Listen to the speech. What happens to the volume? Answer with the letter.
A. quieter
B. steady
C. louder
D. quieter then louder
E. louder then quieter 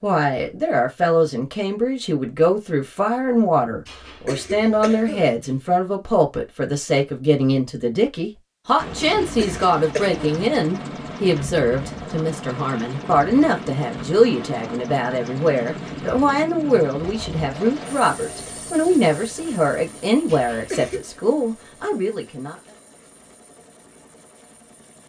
B.